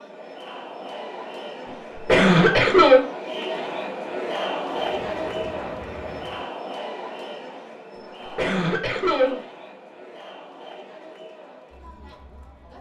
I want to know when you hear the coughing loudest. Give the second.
3 s.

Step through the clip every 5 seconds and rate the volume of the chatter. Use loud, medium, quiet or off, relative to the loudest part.
loud, loud, quiet.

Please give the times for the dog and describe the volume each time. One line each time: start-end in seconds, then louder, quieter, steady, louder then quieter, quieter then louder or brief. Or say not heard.
not heard.